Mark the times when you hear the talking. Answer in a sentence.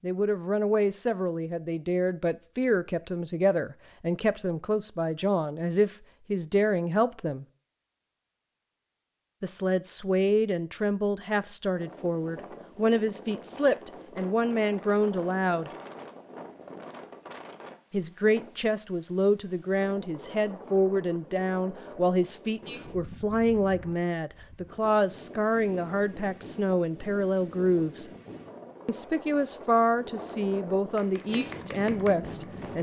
The talking can be heard from 0.0 to 7.5 s, from 9.4 to 15.7 s, from 17.9 to 28.1 s and from 28.9 to 32.7 s.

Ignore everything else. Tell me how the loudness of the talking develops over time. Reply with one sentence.
The volume of the talking stays about the same.